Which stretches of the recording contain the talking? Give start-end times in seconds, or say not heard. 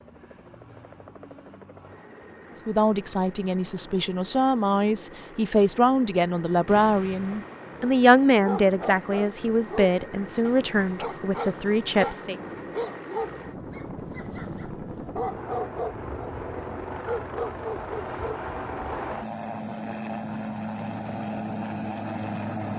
2.5-12.3.